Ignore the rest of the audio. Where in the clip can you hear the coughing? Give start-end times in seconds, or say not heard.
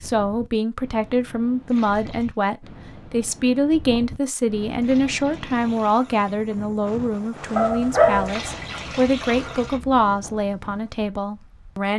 not heard.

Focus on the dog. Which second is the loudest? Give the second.
8 s.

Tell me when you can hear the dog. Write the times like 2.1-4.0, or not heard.
7.5-10.0.